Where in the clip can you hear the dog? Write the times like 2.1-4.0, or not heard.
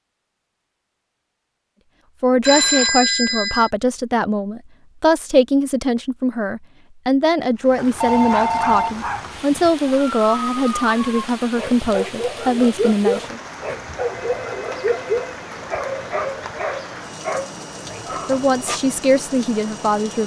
7.8-18.8.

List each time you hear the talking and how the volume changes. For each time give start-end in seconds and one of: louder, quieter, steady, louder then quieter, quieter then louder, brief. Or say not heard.
2.2-13.4 steady
17.9-20.2 brief.